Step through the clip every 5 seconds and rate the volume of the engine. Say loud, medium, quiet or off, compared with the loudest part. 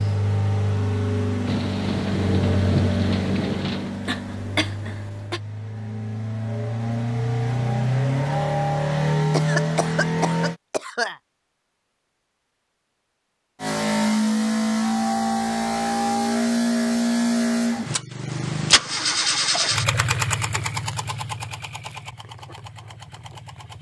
medium, loud, loud, loud, medium.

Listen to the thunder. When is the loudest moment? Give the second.
3 s.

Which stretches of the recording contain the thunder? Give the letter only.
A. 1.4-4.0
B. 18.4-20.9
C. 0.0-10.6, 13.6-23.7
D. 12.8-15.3
A.